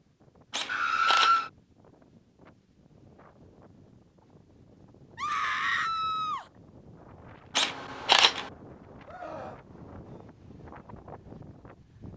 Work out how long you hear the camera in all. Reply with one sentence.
The camera can be heard for 2 seconds in total.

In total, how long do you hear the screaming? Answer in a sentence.
You can hear the screaming for 3 seconds altogether.